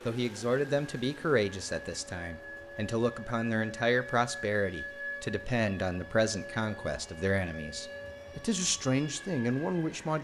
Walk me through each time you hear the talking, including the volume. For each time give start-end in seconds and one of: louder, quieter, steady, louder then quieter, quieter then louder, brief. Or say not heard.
0.1-10.1 steady.